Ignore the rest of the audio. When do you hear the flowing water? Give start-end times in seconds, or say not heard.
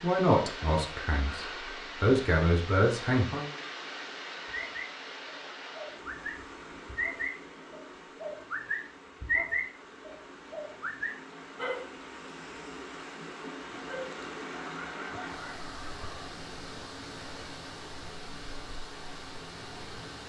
0.0-20.2.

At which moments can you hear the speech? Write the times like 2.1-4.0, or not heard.
0.0-3.5.